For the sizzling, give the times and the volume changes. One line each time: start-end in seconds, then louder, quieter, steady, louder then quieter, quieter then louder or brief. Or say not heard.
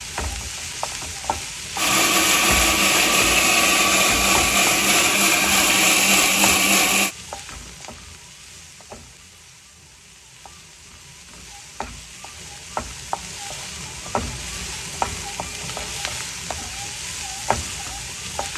0.0-18.5 quieter then louder.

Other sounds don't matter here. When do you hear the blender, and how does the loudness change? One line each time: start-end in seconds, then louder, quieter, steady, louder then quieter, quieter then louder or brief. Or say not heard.
1.8-7.2 steady.